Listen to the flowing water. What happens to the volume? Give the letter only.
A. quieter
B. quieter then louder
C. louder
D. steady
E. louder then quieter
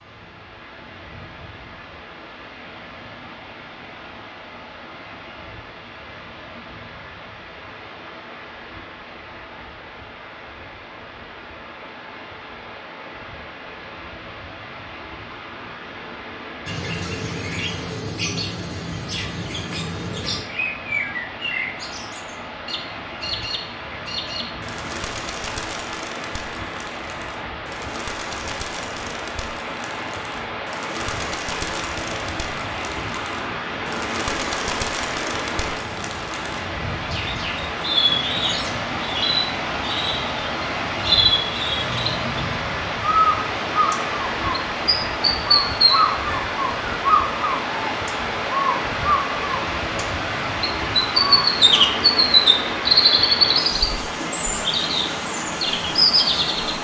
C.